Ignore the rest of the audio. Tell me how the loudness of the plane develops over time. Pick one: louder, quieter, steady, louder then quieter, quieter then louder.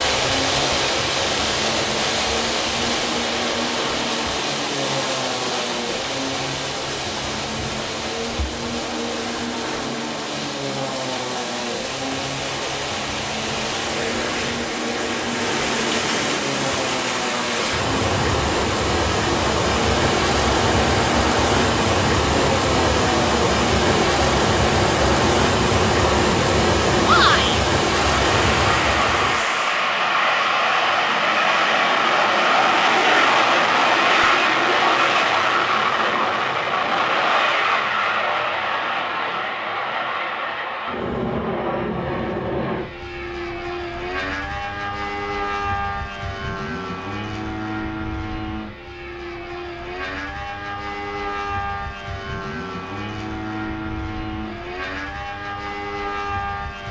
louder then quieter.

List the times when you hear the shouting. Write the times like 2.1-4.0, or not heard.
27.0-27.6.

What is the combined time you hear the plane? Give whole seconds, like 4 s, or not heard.
57 s.